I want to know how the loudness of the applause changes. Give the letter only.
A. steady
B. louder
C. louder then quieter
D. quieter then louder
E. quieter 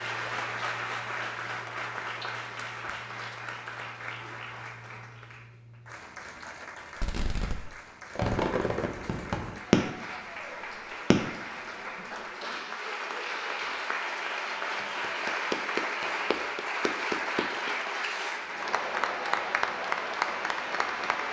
D.